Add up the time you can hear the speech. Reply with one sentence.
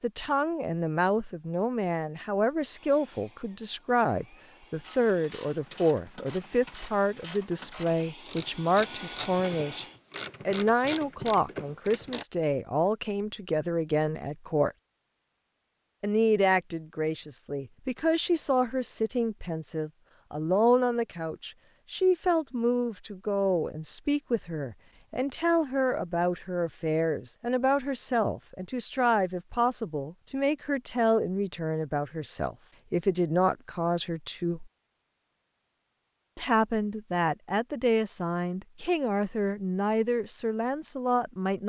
The speech can be heard for 38 seconds in total.